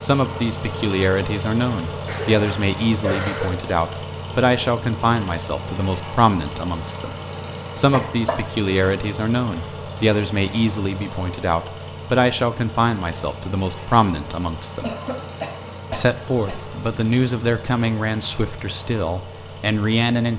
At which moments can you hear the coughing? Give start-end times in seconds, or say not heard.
2.0-3.7, 7.5-8.9, 14.8-16.6.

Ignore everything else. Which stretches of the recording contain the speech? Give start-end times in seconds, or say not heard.
0.0-7.2, 7.8-14.9, 15.9-20.3.